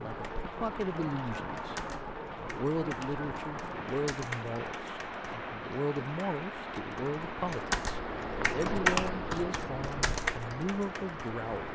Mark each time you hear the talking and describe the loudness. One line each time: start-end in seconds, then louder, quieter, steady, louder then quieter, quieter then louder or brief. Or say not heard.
0.0-1.8 brief
2.4-11.7 steady.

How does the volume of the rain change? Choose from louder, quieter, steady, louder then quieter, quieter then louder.
steady.